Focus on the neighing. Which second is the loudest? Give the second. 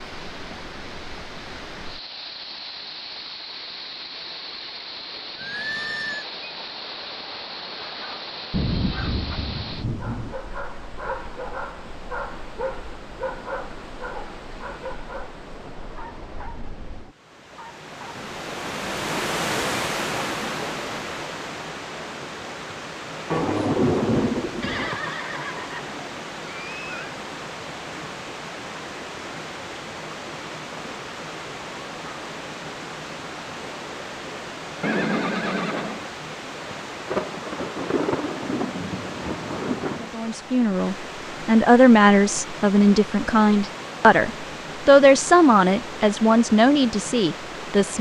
35 s.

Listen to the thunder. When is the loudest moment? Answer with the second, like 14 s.
24 s.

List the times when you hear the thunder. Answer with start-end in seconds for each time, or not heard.
8.5-10.3, 23.3-24.9, 37.0-40.1.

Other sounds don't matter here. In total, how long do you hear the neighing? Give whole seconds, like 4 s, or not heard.
5 s.